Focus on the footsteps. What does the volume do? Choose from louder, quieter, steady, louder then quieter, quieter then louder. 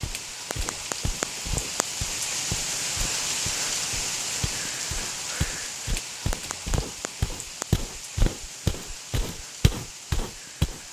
louder.